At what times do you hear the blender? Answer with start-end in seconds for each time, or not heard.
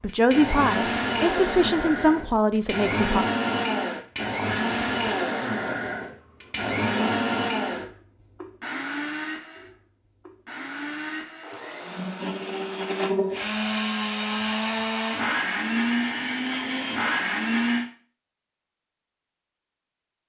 0.0-17.9.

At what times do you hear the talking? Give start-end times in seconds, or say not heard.
0.0-3.2.